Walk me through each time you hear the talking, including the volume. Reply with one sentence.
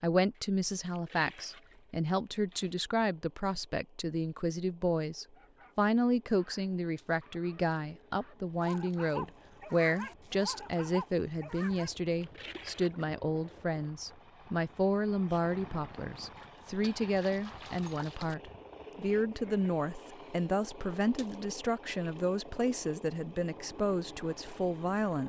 The talking can be heard from 0.0 to 25.2 s, at a steady volume.